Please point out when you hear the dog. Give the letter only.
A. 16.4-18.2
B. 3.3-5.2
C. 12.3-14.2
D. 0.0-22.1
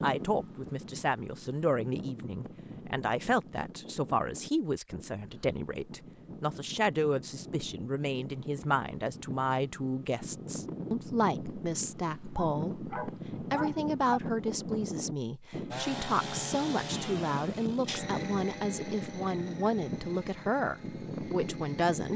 C.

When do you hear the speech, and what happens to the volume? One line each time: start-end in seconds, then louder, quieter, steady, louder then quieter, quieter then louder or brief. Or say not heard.
0.0-22.1 steady.